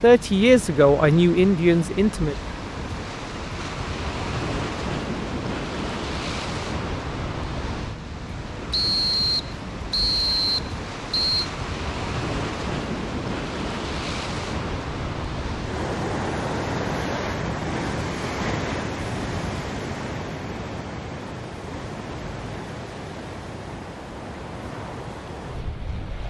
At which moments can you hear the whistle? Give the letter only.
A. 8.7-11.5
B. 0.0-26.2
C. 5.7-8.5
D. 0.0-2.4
A.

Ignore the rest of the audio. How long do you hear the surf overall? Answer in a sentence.
The surf can be heard for 26 seconds in total.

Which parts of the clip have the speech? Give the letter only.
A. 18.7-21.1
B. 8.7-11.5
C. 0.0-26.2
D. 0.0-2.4
D.